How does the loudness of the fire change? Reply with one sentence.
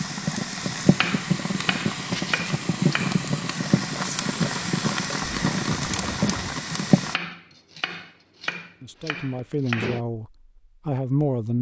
The volume of the fire stays about the same.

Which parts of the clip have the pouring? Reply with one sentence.
The pouring can be heard from 5.2 to 6.6 s.